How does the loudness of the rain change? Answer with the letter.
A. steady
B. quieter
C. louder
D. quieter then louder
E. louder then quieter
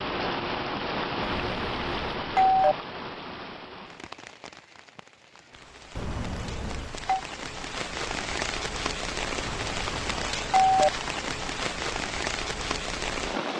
D.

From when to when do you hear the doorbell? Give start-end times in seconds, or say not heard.
1.2-2.8, 6.0-7.2, 9.4-10.9.